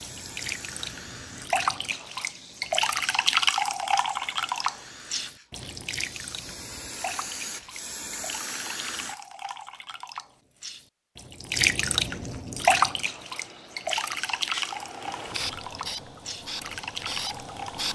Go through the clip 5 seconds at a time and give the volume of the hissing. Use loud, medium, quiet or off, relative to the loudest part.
medium, loud, medium, loud.